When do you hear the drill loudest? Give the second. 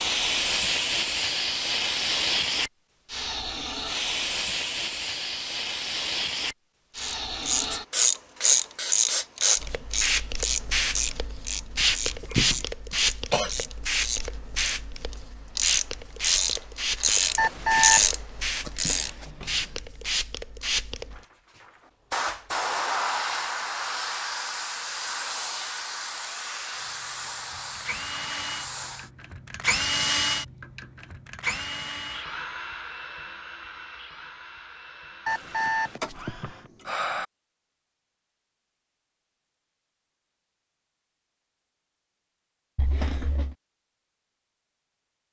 30 s.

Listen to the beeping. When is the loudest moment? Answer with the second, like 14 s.
18 s.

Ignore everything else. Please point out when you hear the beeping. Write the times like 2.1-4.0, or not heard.
17.4-18.1, 35.2-37.2.